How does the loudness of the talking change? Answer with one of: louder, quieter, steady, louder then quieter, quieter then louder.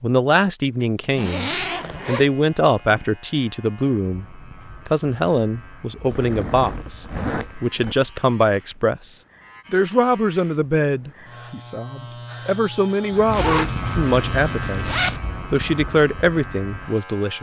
steady.